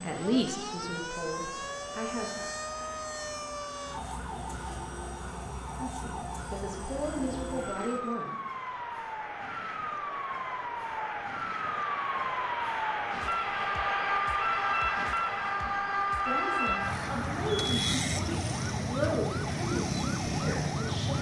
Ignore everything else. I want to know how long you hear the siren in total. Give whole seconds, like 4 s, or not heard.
21 s.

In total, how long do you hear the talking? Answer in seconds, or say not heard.
10 s.